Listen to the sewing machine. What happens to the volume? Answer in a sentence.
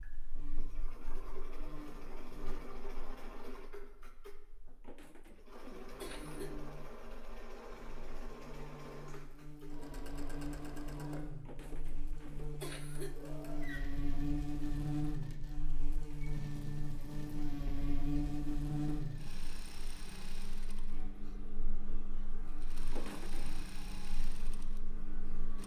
The volume of the sewing machine stays about the same.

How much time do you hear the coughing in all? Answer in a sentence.
The coughing can be heard for 4 seconds in total.